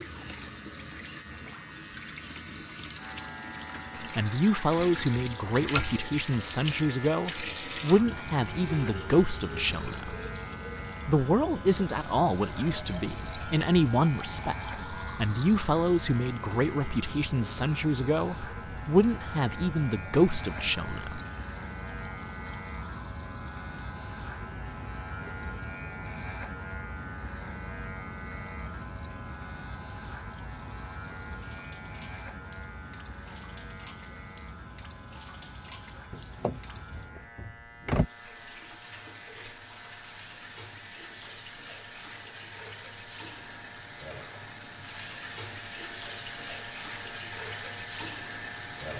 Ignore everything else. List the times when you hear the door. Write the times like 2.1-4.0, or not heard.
36.1-38.0.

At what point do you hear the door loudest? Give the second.
38 s.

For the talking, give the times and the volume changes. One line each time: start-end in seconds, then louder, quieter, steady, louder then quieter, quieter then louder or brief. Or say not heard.
4.0-10.2 steady
11.1-21.2 steady.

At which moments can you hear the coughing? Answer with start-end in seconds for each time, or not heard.
not heard.